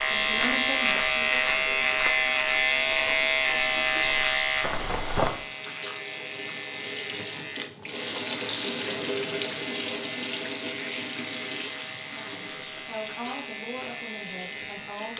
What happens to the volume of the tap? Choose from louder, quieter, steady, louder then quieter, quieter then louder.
louder then quieter.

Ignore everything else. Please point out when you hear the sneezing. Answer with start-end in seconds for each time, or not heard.
not heard.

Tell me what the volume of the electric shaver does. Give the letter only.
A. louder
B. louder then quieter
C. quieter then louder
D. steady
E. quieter
E.